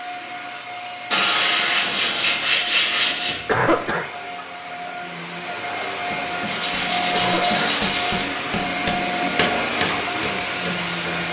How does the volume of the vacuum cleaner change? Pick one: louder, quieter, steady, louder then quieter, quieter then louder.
louder.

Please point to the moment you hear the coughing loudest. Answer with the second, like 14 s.
4 s.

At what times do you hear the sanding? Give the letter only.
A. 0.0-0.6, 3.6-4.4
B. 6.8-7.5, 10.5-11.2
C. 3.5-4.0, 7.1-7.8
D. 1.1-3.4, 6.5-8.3
D.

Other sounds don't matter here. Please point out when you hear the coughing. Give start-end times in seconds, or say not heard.
3.5-4.0, 7.1-7.8.